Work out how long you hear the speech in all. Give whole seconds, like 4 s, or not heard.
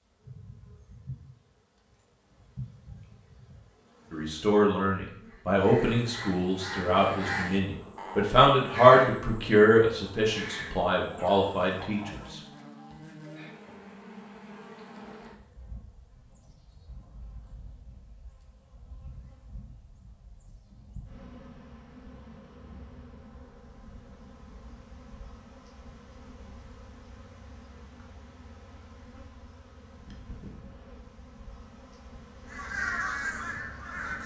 8 s.